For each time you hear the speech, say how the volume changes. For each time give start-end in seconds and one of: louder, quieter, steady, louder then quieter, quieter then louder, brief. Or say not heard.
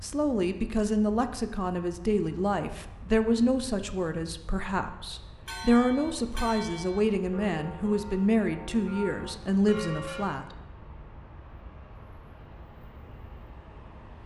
0.0-10.6 steady.